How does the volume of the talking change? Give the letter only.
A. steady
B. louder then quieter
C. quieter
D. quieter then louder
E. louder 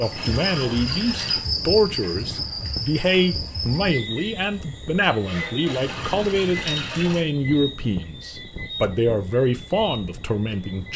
A.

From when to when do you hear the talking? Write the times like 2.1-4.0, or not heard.
0.0-10.9.